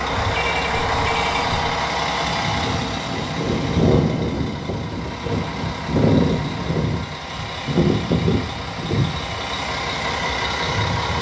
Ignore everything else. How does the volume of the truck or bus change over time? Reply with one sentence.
The volume of the truck or bus stays about the same.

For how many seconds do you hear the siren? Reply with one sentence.
You can't hear the siren here.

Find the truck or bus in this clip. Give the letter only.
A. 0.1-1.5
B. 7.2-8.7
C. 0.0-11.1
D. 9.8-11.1
C.